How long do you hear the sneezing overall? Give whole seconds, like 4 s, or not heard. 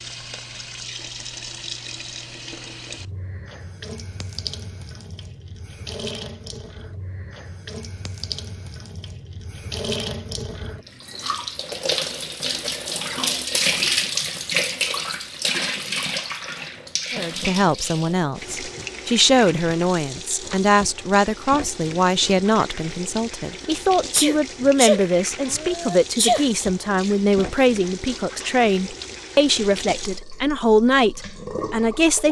2 s.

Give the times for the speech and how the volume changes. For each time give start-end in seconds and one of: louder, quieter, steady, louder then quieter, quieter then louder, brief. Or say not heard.
17.1-32.2 steady.